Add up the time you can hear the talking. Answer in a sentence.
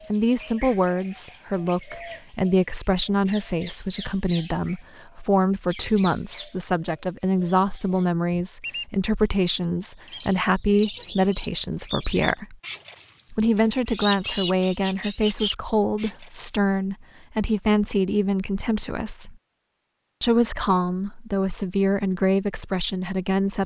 You can hear the talking for 22 seconds altogether.